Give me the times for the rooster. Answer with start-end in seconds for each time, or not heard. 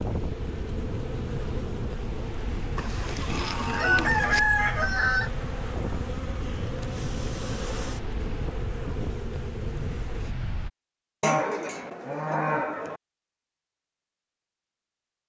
2.8-5.3.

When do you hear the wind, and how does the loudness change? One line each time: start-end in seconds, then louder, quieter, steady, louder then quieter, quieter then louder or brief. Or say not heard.
0.0-10.7 steady.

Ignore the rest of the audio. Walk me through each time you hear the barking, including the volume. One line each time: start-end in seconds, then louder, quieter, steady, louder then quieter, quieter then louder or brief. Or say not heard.
not heard.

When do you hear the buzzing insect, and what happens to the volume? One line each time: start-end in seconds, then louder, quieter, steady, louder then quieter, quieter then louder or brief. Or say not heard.
0.0-10.3 steady.